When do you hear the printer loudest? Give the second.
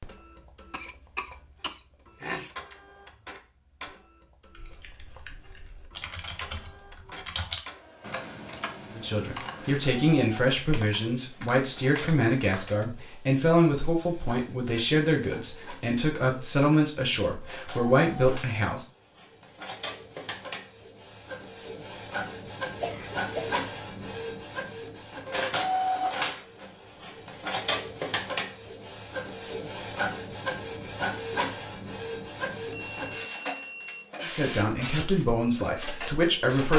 26 s.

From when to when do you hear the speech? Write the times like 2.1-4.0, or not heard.
8.9-18.9, 34.2-36.7.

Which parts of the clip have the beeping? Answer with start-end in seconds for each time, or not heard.
32.7-34.0.